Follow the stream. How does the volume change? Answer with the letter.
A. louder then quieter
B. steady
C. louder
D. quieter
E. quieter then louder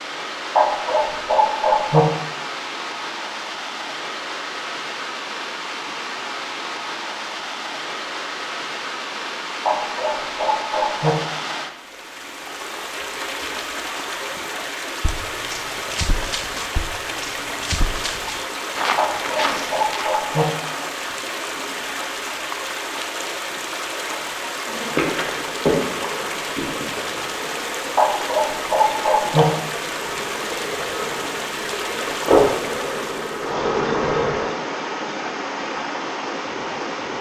B.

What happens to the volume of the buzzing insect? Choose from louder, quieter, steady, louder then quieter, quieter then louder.
quieter then louder.